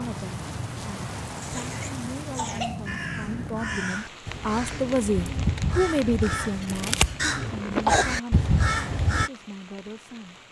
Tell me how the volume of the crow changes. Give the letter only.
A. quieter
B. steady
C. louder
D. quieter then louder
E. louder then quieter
C.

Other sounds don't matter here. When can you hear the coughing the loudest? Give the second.
8 s.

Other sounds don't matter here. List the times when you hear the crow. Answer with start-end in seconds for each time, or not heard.
2.9-9.3.